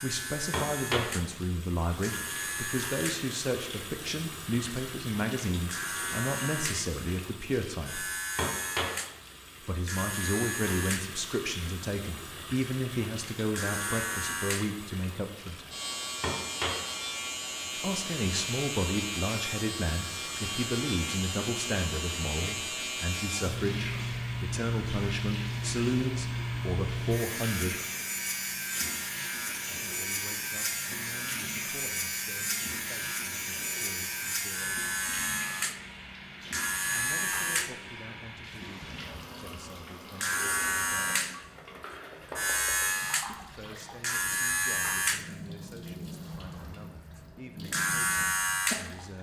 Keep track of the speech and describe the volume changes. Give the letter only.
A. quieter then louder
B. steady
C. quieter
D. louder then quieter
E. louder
C.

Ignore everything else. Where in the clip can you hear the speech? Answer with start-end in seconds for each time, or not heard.
0.0-8.1, 9.6-15.7, 17.8-27.8, 29.6-35.0, 36.9-41.1, 43.2-49.1.